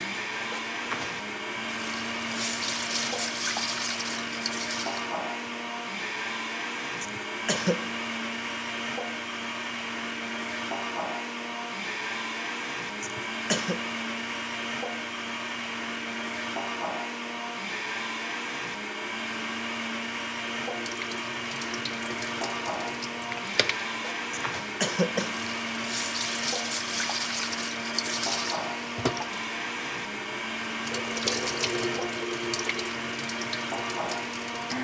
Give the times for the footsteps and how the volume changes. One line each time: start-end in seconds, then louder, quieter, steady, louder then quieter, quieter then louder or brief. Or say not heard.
not heard.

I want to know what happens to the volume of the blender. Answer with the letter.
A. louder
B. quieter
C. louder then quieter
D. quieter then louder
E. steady
E.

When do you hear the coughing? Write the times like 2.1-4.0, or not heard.
7.0-7.8, 13.0-13.8, 24.3-25.5.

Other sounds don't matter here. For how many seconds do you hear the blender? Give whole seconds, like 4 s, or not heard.
35 s.